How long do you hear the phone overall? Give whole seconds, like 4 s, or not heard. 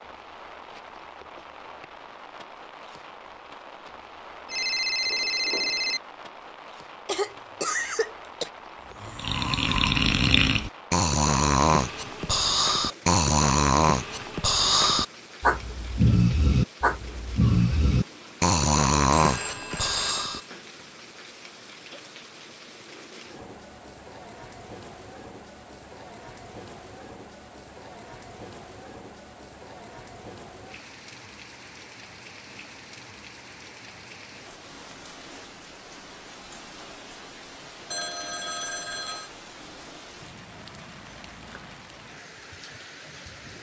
4 s.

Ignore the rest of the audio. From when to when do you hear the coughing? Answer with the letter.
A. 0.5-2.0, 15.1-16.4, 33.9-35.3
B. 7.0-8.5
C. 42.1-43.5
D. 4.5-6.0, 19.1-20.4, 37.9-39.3
B.